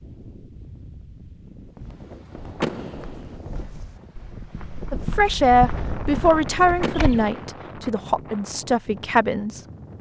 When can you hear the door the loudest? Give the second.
3 s.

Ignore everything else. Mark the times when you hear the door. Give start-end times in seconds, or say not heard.
2.6-3.4, 6.8-7.6.